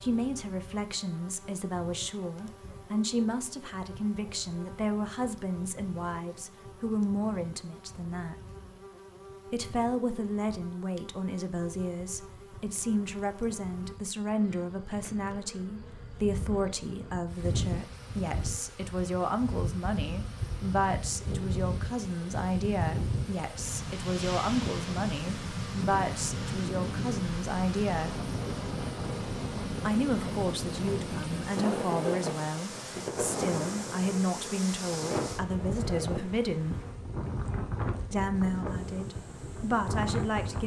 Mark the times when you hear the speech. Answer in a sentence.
You can hear the speech from 0.0 to 8.3 s, from 9.5 to 28.2 s, from 29.9 to 36.8 s and from 38.1 to 40.6 s.